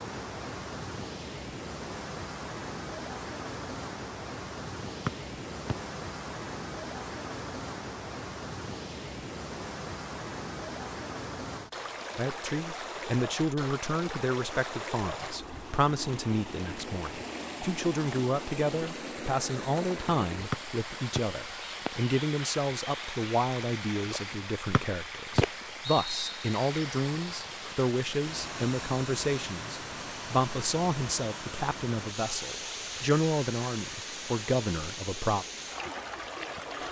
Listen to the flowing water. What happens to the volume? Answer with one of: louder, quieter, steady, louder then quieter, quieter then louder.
steady.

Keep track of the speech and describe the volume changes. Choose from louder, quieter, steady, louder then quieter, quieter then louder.
steady.